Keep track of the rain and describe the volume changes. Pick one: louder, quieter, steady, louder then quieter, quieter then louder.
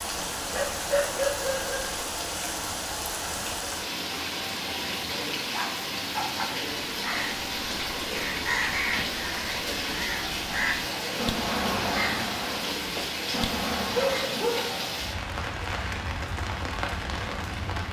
steady.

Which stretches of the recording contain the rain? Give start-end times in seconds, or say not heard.
0.0-17.8.